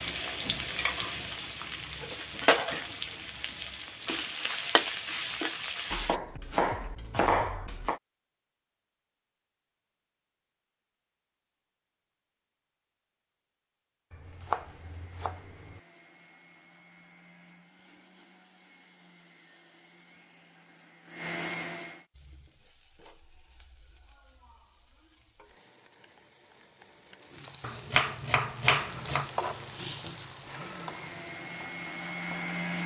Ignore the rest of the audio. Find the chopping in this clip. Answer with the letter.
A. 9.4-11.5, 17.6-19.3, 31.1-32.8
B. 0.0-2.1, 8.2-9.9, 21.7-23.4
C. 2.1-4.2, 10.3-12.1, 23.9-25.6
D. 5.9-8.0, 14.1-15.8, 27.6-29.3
D.